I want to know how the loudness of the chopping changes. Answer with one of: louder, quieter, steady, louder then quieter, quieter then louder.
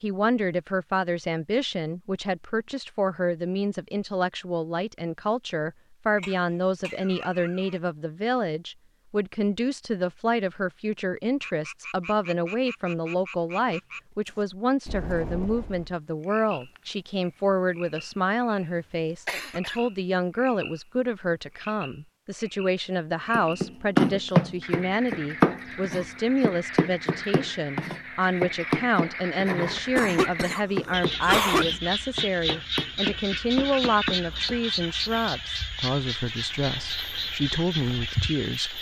quieter.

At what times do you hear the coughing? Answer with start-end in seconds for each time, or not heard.
6.2-7.8, 19.2-19.8, 29.8-31.6.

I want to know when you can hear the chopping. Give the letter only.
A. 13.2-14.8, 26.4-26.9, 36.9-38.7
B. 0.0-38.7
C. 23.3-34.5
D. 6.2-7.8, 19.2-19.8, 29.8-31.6
C.